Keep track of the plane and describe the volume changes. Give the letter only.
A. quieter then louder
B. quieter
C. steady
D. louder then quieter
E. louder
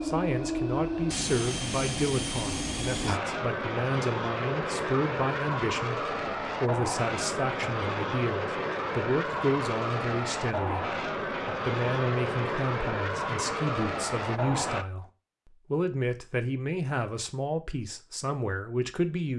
C.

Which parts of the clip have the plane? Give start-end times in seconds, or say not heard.
0.0-14.8.